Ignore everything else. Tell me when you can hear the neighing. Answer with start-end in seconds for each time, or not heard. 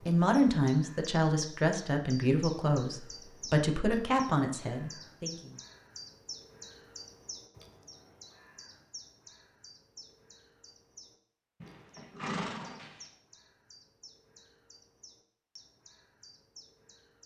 11.6-13.1.